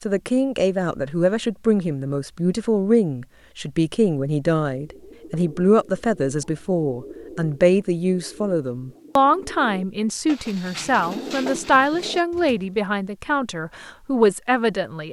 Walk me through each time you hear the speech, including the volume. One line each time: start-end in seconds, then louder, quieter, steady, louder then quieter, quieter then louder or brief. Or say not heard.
0.0-15.0 steady.